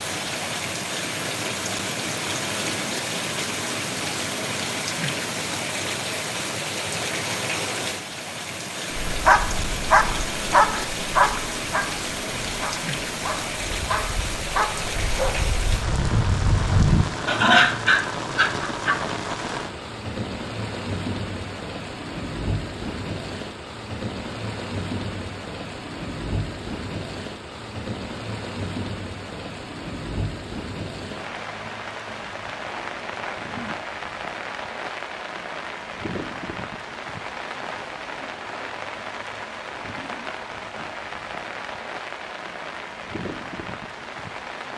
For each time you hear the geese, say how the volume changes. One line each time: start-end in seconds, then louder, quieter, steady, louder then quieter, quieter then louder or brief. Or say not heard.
not heard.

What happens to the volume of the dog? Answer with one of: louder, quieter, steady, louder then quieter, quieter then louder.
quieter then louder.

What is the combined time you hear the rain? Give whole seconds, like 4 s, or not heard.
45 s.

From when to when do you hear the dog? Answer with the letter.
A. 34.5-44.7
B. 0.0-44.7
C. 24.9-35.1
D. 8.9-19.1
D.